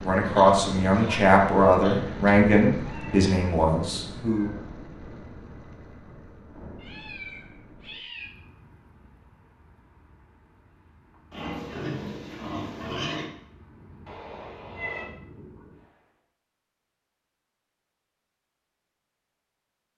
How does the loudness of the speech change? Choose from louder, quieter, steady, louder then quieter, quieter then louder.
quieter.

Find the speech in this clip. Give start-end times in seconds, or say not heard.
0.0-4.5.